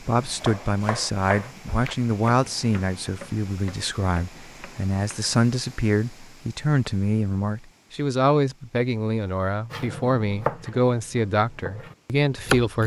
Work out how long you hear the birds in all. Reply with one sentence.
You can't hear the birds here.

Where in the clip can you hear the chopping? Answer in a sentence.
The chopping can be heard from 0.2 to 5.3 s and from 9.7 to 12.8 s.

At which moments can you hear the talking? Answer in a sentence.
The talking can be heard from 0.0 to 12.8 s.